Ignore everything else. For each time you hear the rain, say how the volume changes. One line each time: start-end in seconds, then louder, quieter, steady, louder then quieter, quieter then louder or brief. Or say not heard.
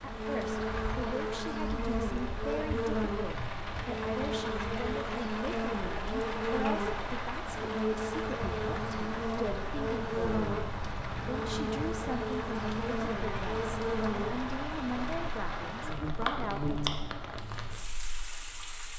0.0-18.9 steady.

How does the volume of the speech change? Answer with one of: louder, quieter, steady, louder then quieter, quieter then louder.
steady.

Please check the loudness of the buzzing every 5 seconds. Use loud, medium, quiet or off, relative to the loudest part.
loud, loud, loud, medium.